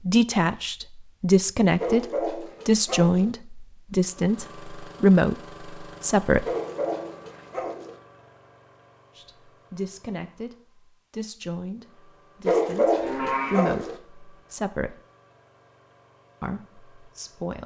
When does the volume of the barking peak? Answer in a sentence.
The loudest moment of the barking is at 13 seconds.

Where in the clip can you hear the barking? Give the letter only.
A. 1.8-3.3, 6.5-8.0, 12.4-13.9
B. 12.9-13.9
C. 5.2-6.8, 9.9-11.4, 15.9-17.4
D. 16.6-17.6
A.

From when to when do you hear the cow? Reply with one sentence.
The cow can be heard from 12.9 to 13.9 s.